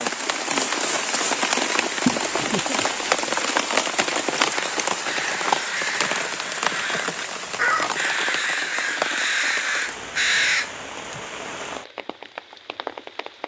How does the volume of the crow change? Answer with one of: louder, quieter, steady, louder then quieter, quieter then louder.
louder.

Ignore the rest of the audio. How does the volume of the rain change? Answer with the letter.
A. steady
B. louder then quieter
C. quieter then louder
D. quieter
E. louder
D.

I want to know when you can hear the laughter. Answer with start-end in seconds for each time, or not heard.
2.0-3.4.